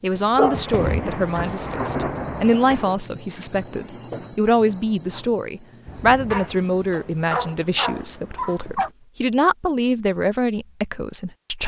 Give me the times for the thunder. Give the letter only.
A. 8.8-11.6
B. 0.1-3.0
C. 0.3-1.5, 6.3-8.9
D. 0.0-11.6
B.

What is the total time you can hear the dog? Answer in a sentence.
The dog can be heard for 4 seconds in total.